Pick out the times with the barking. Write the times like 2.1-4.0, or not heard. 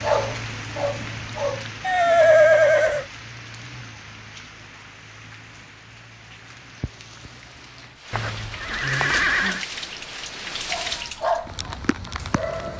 0.0-1.6, 10.7-12.7.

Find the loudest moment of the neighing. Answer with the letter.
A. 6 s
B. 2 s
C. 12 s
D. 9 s
B.